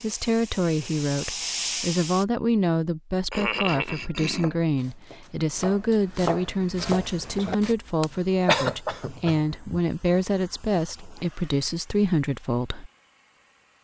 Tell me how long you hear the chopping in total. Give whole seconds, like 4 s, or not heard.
4 s.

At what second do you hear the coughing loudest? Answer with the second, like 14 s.
9 s.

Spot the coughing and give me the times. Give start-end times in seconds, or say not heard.
3.3-4.5, 8.0-9.8.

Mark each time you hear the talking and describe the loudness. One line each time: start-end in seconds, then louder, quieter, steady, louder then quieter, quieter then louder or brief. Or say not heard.
0.0-12.9 steady.